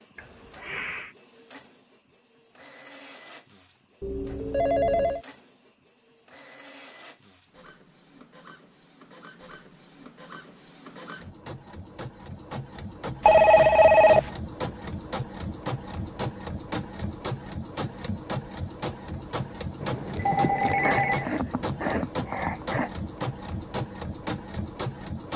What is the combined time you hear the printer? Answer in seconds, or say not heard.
25 s.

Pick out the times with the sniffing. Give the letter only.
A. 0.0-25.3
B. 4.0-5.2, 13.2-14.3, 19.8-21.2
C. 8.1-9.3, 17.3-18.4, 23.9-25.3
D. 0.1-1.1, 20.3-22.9
D.